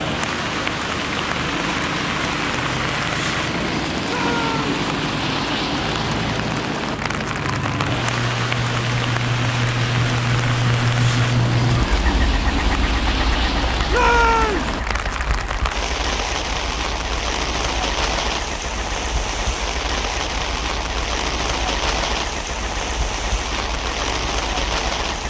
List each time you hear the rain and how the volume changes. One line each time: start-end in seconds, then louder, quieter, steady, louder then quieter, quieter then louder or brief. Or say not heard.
0.0-25.2 steady.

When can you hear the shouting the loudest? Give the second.
14 s.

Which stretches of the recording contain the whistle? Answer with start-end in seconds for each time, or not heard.
not heard.